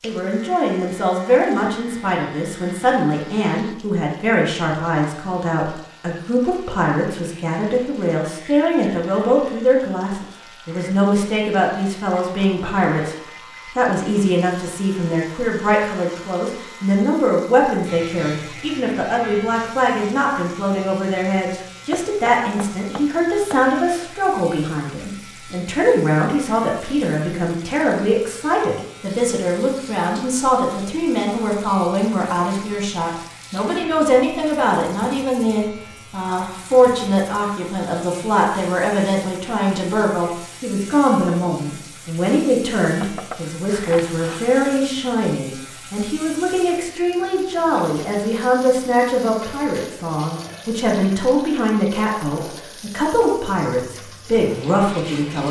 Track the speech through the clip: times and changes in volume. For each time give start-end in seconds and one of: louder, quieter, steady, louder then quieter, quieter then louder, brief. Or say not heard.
0.0-55.4 steady.